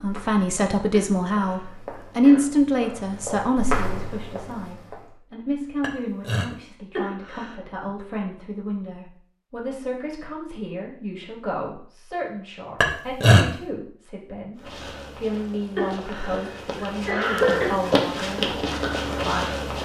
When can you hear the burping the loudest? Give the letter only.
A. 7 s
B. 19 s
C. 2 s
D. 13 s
D.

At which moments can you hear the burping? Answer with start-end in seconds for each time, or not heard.
5.8-6.5, 12.8-13.4.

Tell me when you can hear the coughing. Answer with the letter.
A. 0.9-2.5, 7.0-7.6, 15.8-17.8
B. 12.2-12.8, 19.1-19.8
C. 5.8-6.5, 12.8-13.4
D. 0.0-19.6
A.